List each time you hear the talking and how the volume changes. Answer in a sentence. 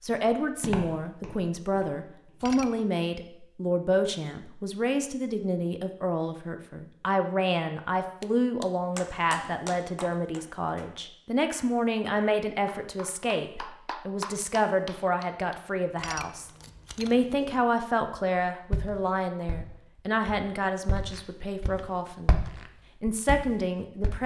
The talking can be heard from 0.0 to 22.4 s, at a steady volume; and briefly from 23.0 to 24.2 s.